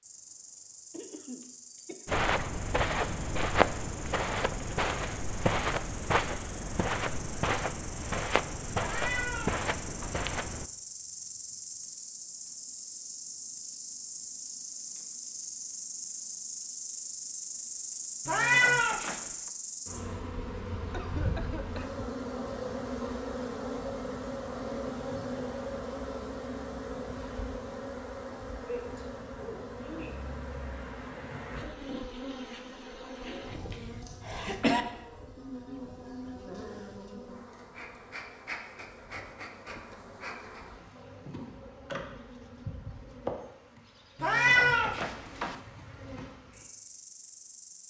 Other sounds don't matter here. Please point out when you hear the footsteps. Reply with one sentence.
You can hear the footsteps from 2.0 to 10.7 s.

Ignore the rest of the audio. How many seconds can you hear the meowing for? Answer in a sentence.
The meowing can be heard for 4 seconds in total.